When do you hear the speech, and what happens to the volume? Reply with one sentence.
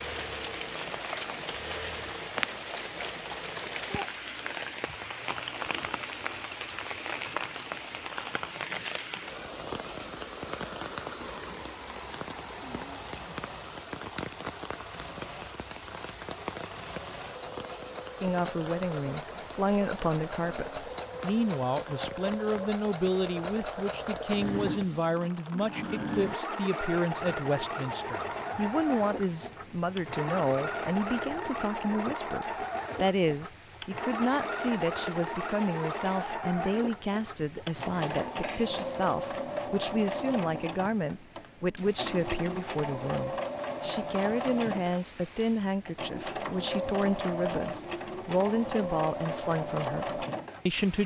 The speech can be heard from 18.2 to 51.0 s, at a steady volume.